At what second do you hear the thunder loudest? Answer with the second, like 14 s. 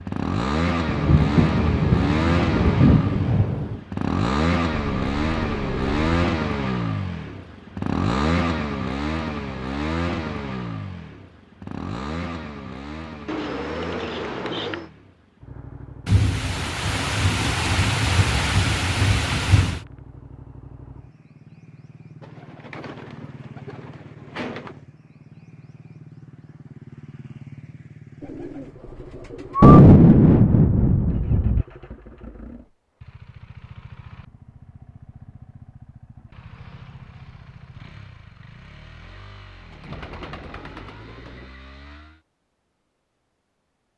30 s.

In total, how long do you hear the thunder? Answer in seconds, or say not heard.
9 s.